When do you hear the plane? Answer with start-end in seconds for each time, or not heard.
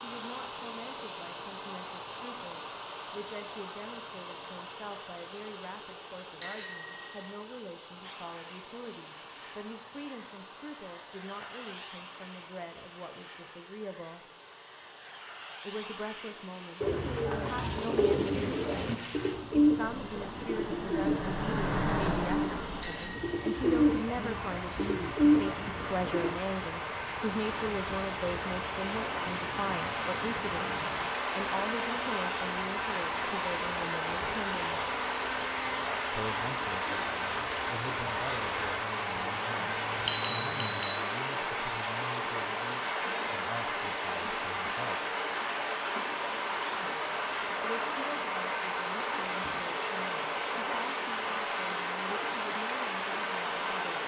8.0-40.9.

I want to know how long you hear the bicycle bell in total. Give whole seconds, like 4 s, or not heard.
3 s.